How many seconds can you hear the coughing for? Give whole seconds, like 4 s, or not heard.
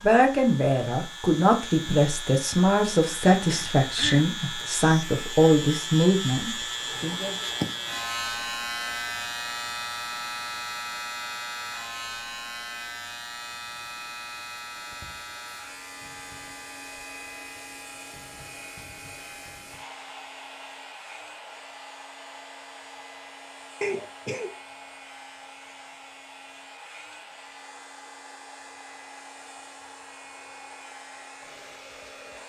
2 s.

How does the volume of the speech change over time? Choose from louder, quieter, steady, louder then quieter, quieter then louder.
steady.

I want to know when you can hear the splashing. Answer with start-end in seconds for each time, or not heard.
not heard.